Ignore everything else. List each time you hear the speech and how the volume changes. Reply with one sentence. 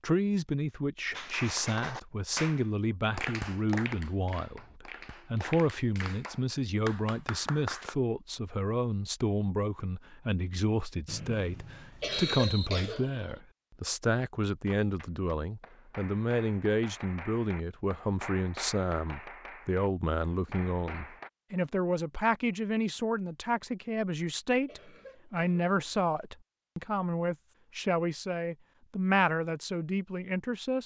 You can hear the speech from 0.0 to 30.8 s, at a steady volume.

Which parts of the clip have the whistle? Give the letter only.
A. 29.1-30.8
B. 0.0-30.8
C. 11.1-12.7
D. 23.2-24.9
C.